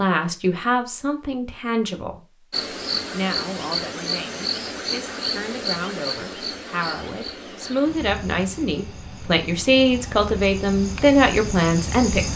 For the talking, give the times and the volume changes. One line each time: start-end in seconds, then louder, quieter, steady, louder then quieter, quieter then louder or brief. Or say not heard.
0.0-2.2 brief
3.1-12.3 louder.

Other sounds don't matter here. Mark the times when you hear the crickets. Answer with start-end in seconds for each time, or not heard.
2.5-12.3.